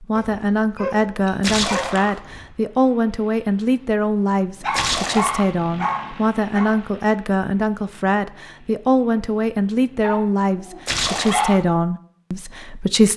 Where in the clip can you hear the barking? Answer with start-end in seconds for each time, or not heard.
0.1-2.5, 4.6-6.8, 10.0-11.6.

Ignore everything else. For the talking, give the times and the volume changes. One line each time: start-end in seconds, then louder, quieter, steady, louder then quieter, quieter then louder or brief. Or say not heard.
0.0-13.1 steady.